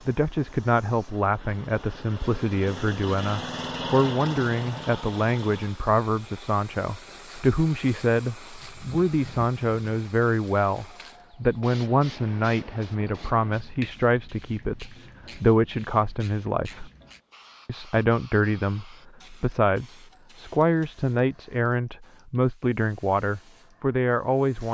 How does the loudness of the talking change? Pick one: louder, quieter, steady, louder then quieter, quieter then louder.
steady.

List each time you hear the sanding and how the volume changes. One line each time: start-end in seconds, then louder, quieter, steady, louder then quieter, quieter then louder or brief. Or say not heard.
not heard.